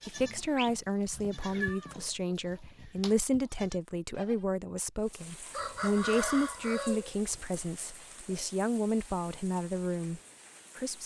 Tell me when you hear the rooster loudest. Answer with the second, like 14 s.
6 s.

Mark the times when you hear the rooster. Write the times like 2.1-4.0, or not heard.
5.5-7.6.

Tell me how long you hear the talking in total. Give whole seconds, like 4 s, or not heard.
11 s.